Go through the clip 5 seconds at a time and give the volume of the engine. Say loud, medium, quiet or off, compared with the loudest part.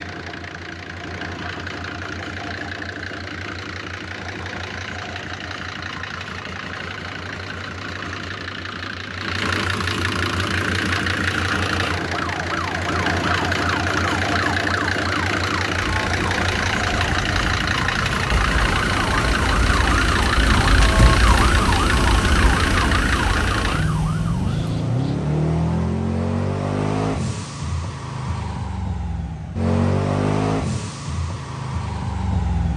medium, medium, loud, loud, loud, loud, loud.